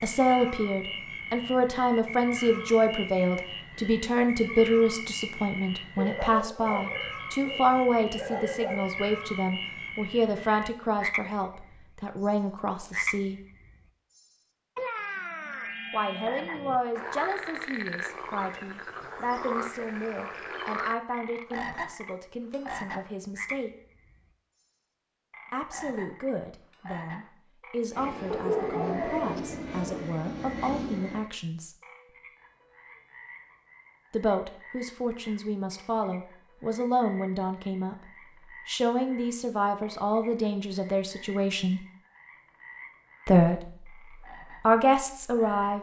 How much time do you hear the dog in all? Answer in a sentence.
The dog can be heard for 5 seconds in total.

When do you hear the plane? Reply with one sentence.
You can hear the plane from 27.9 to 31.3 s.